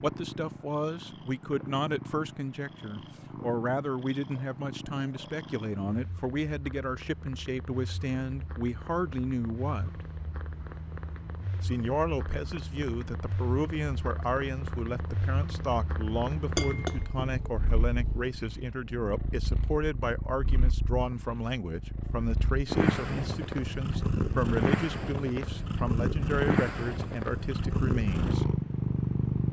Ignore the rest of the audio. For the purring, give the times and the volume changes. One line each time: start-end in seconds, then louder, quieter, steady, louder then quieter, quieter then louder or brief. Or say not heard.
0.0-29.4 louder.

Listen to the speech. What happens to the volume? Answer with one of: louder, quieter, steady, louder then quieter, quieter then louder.
steady.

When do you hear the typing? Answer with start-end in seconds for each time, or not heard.
not heard.